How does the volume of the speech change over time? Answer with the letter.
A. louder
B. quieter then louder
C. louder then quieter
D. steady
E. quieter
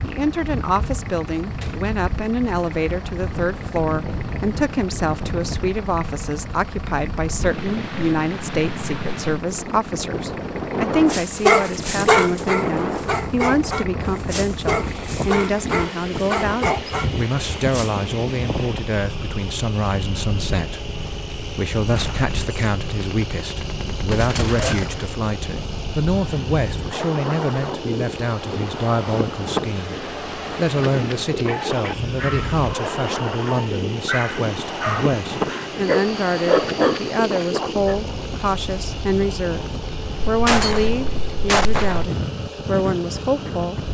D.